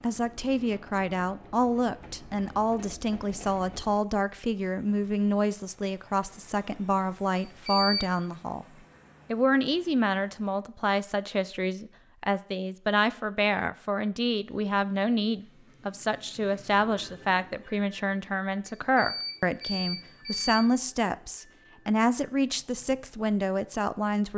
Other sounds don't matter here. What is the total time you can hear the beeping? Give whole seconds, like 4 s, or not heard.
3 s.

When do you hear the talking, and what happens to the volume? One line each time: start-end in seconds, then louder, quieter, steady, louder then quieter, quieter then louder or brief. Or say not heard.
0.0-8.7 steady
9.3-24.3 steady.